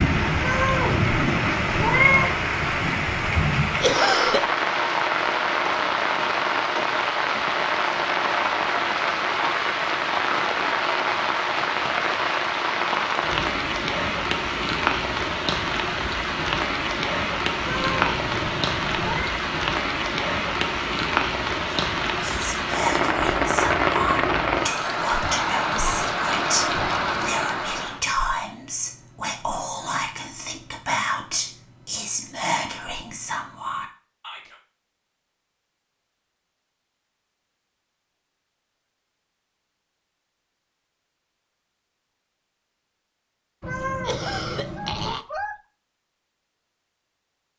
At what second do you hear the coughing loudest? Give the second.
4 s.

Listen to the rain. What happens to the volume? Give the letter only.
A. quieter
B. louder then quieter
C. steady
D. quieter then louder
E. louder
C.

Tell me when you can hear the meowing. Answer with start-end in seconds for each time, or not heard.
0.4-2.3, 17.6-19.3, 43.6-45.1.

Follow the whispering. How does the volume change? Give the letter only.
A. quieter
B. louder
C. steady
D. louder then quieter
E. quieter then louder
C.